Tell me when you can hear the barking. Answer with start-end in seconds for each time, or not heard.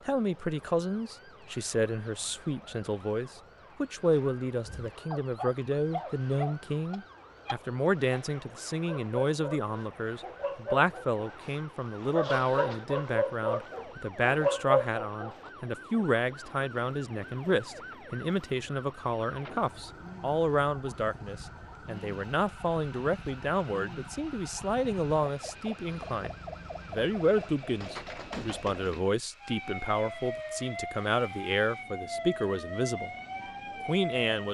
4.7-15.5.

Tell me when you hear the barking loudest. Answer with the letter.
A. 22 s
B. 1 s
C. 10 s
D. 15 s
D.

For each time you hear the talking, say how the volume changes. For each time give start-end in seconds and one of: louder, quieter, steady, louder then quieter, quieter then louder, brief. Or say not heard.
0.1-33.1 steady
33.9-34.4 brief.